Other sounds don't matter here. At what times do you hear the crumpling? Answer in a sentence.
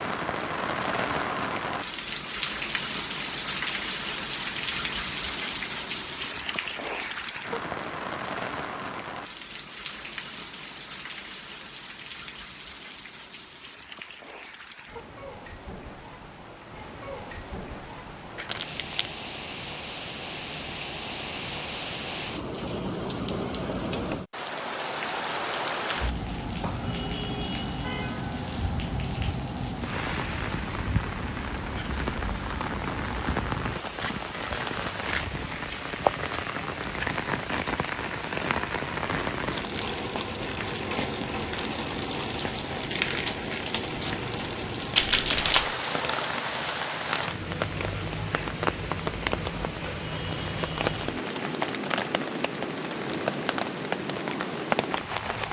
The crumpling can be heard from 18.4 to 19.1 s and from 45.0 to 45.8 s.